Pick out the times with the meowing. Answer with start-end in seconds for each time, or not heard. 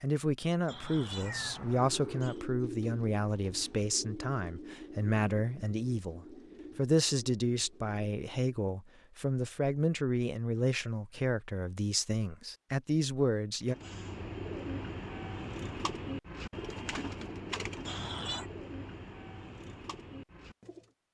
0.7-2.4, 17.9-18.5.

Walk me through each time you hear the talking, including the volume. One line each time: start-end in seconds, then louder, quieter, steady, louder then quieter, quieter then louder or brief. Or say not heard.
0.0-13.8 steady.